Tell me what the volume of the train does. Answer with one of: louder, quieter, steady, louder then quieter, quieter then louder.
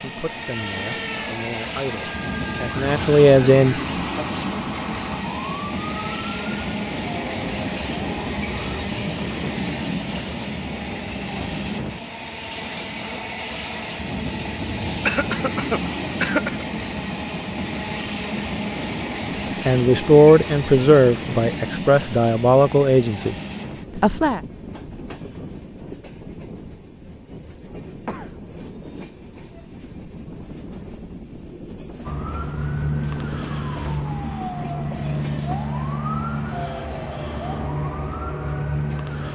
quieter.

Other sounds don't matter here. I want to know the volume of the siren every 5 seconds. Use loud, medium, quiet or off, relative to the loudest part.
medium, medium, off, off, off, off, loud, loud.